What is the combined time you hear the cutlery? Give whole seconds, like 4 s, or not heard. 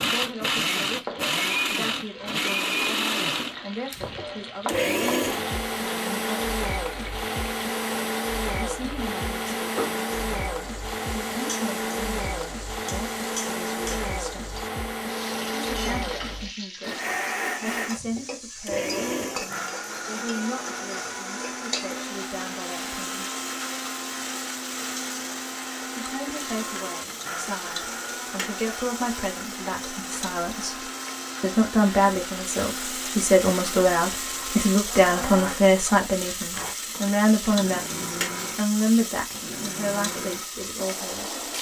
not heard.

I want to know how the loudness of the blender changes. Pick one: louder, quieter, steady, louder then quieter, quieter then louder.
quieter.